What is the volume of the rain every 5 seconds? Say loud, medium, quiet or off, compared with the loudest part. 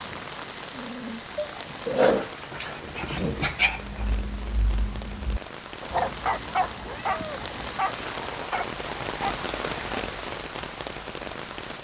medium, loud, loud.